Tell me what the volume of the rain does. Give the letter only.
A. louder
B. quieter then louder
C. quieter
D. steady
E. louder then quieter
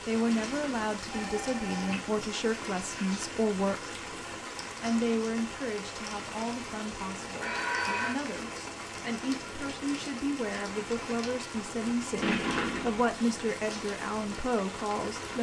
D.